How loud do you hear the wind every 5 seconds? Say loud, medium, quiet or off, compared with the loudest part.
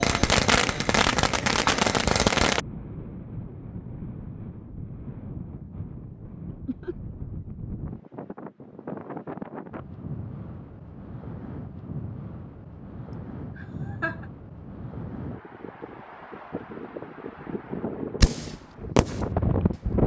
medium, medium, medium, loud.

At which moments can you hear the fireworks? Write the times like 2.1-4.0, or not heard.
0.0-2.6, 18.2-19.9.